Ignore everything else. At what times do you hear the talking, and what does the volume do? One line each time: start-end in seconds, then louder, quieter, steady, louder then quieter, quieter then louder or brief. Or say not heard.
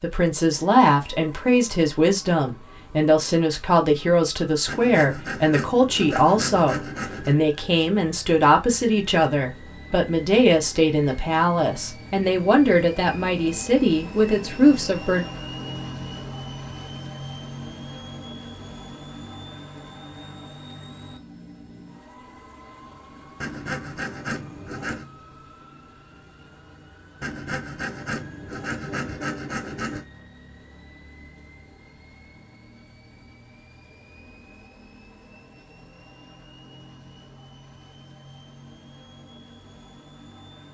0.0-15.2 steady.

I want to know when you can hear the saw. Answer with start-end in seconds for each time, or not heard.
4.7-7.3, 23.4-25.1, 27.2-30.1.